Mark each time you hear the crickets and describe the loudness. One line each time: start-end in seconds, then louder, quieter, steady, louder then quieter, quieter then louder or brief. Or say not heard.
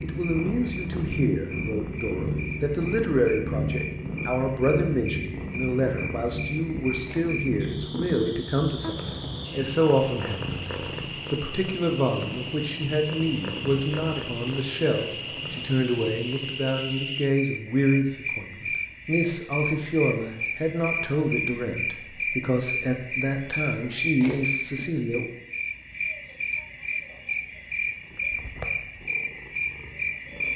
0.0-30.5 louder.